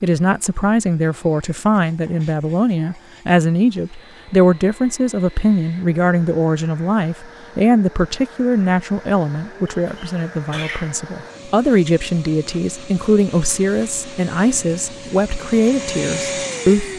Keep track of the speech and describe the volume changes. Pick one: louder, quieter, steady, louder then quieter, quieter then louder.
steady.